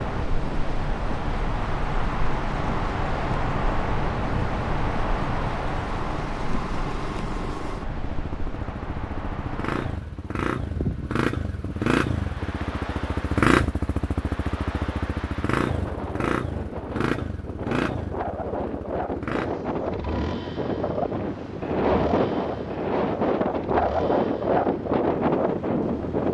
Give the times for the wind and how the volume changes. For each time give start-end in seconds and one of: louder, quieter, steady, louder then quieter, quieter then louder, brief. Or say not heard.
0.0-26.2 quieter then louder.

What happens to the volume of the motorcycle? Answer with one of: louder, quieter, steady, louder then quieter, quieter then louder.
louder then quieter.